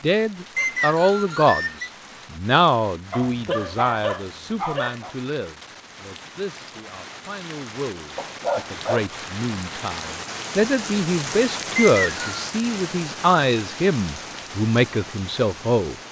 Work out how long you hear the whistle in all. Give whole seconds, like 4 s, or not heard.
2 s.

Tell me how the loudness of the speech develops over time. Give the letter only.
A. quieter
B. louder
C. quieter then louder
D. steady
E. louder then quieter
C.